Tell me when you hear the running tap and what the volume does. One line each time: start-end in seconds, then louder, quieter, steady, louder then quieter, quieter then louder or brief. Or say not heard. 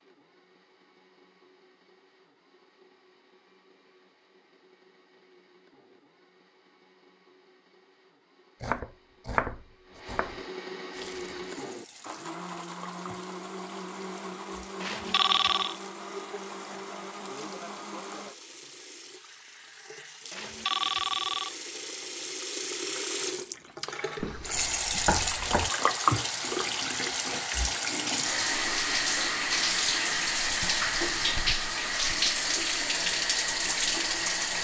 10.9-34.6 louder.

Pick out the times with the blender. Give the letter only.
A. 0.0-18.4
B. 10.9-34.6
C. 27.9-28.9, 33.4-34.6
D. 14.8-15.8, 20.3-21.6
A.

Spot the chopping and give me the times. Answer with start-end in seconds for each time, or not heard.
8.6-10.3, 24.1-25.7.